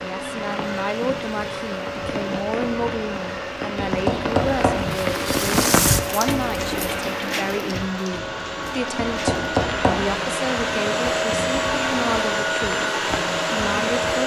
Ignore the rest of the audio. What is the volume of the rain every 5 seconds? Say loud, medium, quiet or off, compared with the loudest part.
medium, loud, medium.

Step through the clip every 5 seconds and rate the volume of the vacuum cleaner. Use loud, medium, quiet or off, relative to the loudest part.
medium, medium, loud.